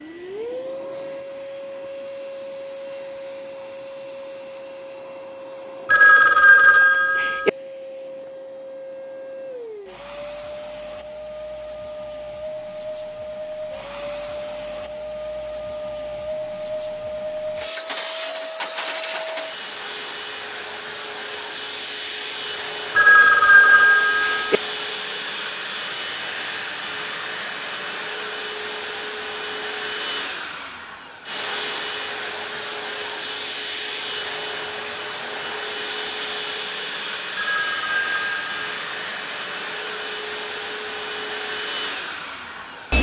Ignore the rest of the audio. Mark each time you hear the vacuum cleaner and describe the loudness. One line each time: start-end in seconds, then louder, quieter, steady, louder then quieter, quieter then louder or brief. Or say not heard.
0.0-42.9 louder.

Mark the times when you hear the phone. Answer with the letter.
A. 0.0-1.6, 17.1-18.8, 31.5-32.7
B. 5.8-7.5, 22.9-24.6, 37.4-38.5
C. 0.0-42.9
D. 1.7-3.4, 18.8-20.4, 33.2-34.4
B.